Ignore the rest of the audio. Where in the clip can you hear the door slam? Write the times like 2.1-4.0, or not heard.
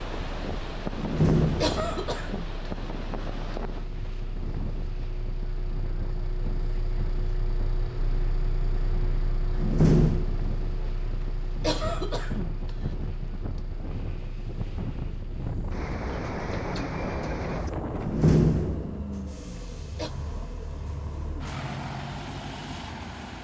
0.9-2.0, 9.6-10.3, 18.0-19.1.